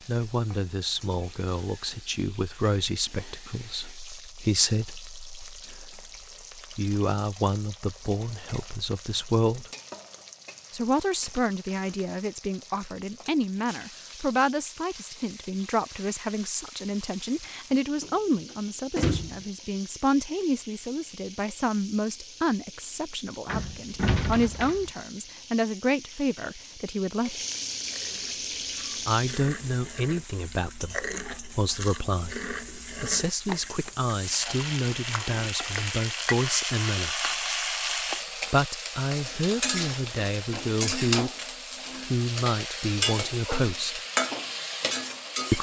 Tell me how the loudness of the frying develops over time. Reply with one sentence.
The volume of the frying goes up.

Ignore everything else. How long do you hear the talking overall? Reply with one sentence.
The talking can be heard for 39 seconds in total.